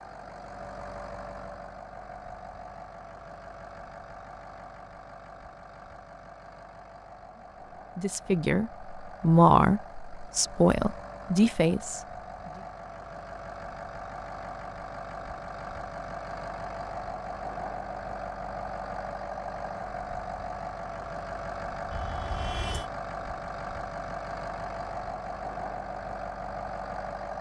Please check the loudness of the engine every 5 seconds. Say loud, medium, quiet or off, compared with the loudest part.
medium, medium, medium, loud, loud, loud.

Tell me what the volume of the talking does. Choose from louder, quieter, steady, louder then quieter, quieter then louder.
louder then quieter.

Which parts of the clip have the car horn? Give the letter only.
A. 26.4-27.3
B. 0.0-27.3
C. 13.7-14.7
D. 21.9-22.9
D.